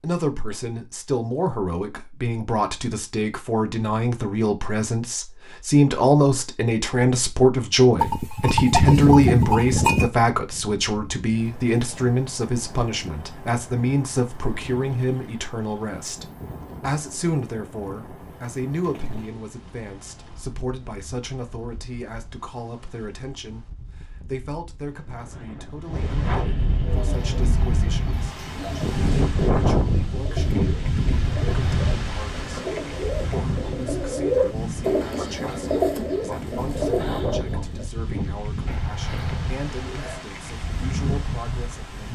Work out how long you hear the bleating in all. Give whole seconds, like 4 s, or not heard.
4 s.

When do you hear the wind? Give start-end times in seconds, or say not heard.
10.3-42.0.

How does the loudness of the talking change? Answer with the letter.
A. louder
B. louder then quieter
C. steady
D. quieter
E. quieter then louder
D.